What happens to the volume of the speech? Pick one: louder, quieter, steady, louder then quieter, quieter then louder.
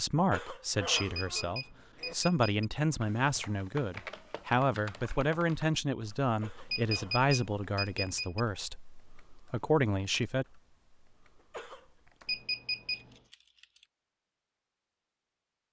steady.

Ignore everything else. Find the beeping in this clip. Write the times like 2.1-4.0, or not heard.
0.9-2.6, 6.7-8.4, 12.2-13.2.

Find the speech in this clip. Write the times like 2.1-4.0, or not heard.
0.0-10.4.